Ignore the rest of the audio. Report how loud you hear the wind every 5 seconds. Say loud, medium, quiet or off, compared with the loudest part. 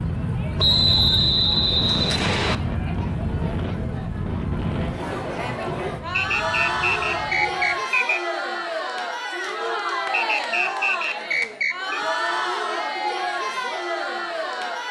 loud, quiet, off.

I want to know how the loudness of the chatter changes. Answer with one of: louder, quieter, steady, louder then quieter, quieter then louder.
louder.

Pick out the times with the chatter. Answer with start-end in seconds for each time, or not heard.
0.0-14.8.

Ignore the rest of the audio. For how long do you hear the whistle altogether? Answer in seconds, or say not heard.
6 s.